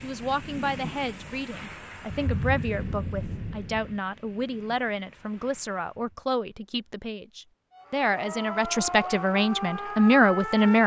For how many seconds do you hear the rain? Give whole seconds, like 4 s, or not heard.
6 s.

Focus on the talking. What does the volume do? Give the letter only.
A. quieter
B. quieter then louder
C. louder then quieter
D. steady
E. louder
E.